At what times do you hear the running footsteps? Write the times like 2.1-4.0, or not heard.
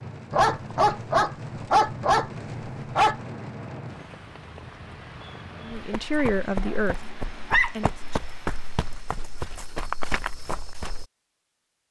5.7-11.1.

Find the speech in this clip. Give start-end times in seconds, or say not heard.
5.6-7.9.